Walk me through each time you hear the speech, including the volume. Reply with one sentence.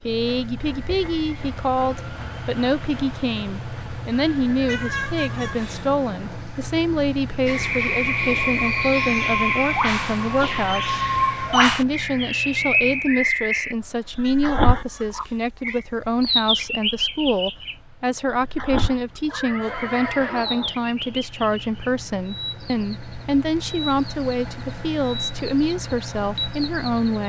You can hear the speech from 0.1 to 27.2 s, at a steady volume.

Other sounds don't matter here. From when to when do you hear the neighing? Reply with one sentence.
You can hear the neighing from 4.3 to 4.8 s and from 19.2 to 20.8 s.